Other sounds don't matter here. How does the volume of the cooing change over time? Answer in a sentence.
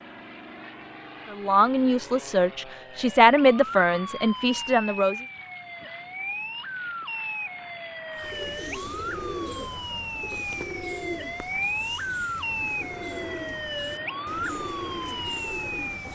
The volume of the cooing goes down, then up.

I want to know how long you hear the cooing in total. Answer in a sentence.
The cooing can be heard for 8 seconds in total.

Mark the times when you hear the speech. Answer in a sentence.
You can hear the speech from 1.3 to 5.2 s.